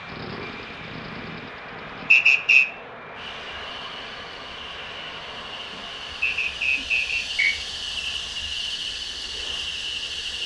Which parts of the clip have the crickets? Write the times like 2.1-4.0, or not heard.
3.1-10.4.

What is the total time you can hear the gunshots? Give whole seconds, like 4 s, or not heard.
2 s.